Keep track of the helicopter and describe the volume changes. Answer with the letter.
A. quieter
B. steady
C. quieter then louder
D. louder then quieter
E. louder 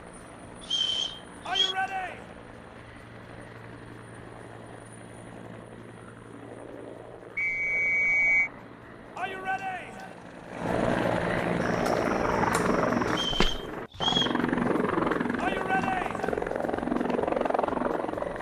E.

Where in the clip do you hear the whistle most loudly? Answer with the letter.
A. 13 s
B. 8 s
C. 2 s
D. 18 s
B.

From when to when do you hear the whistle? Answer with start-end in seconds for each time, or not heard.
0.6-1.8, 7.3-8.5, 13.1-14.4.